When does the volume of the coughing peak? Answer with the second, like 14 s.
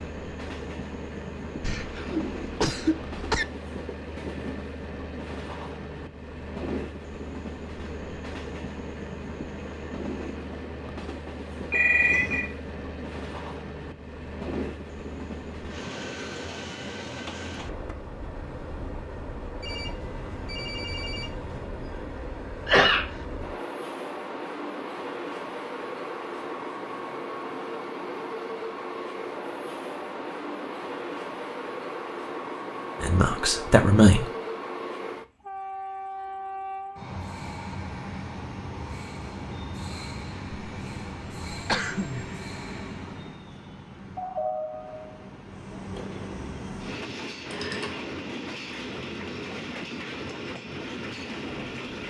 23 s.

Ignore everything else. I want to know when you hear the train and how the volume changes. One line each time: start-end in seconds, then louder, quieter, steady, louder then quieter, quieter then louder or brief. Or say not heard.
0.0-52.0 steady.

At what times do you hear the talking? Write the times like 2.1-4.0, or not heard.
33.0-34.3.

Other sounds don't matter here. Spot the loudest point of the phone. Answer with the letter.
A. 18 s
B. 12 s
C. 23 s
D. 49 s
B.